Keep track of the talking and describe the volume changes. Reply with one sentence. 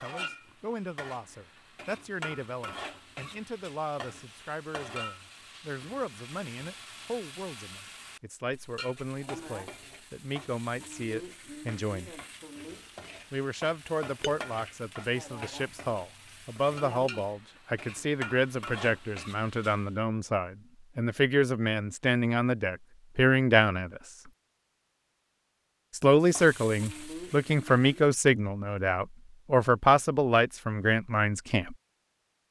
The volume of the talking goes up.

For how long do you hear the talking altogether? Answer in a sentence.
The talking can be heard for 29 seconds in total.